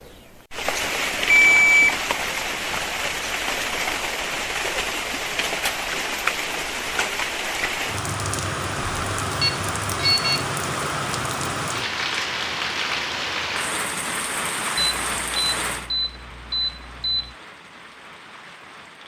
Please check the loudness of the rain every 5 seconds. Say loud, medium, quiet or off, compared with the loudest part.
loud, loud, loud, medium.